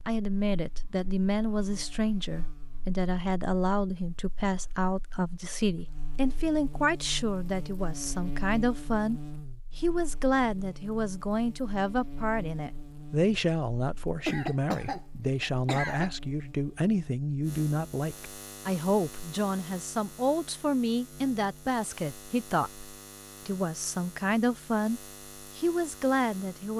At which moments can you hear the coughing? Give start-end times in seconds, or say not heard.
14.2-16.1.